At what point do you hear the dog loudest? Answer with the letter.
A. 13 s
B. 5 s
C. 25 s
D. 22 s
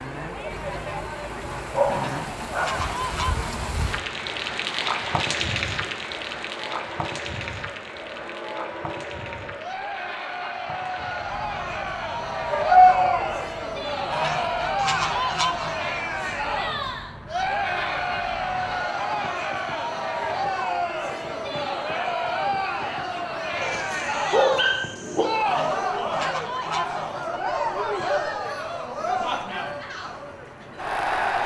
A.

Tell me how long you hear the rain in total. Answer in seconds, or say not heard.
31 s.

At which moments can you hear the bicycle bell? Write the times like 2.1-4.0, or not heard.
not heard.